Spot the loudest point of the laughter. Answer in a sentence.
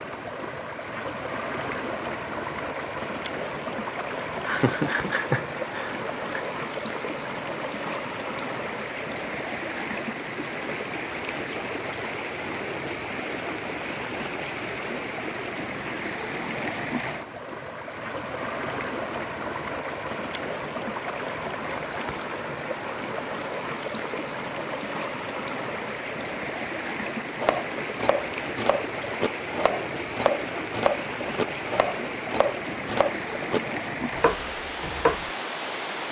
The volume of the laughter peaks at 5 seconds.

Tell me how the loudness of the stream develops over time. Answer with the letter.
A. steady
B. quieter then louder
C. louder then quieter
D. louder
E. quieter
A.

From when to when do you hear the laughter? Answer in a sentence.
You can hear the laughter from 4.4 to 6.5 s.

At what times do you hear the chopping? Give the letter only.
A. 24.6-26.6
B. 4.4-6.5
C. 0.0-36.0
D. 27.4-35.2
D.